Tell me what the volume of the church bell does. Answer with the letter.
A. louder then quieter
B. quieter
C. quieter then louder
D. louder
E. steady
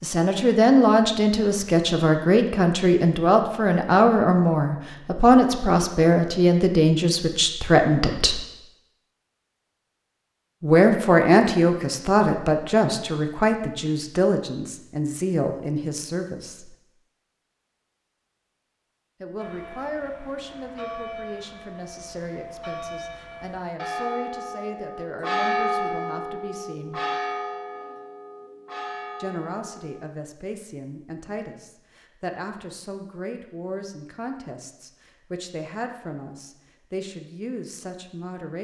A.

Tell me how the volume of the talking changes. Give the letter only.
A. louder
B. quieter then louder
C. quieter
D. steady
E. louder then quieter
C.